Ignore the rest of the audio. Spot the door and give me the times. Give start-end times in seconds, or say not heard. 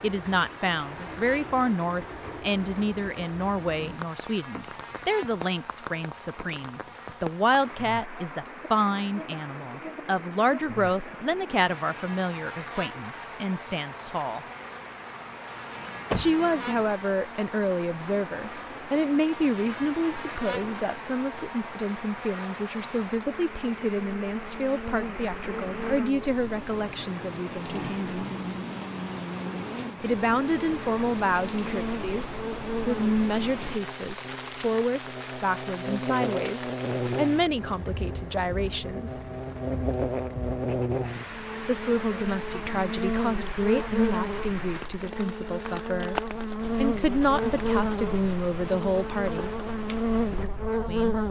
15.8-16.3.